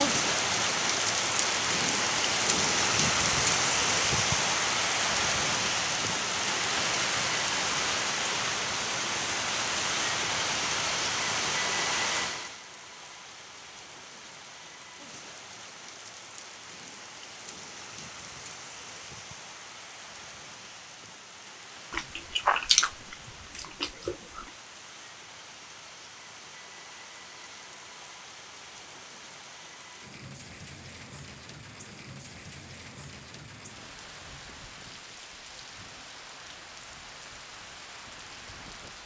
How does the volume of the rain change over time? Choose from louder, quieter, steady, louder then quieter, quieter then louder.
quieter.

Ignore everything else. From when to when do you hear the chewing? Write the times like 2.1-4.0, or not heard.
21.9-24.4.